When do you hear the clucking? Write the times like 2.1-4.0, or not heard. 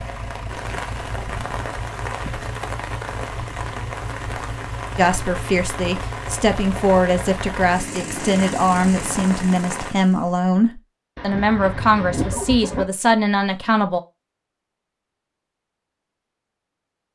11.2-12.8.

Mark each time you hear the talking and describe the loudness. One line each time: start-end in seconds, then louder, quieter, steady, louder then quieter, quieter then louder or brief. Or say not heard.
5.0-14.0 steady.